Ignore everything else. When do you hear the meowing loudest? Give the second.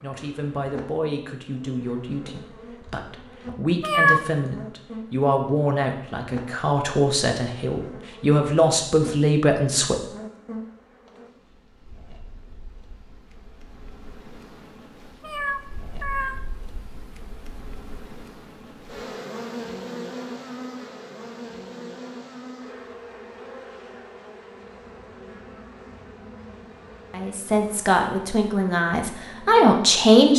4 s.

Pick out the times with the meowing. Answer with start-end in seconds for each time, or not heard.
3.8-4.2, 15.2-16.4.